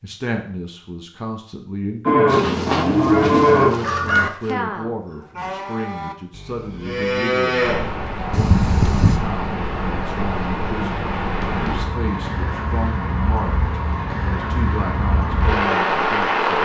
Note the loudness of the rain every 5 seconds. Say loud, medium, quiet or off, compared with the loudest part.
off, medium, medium, loud.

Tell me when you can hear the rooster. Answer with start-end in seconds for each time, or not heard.
2.2-4.3.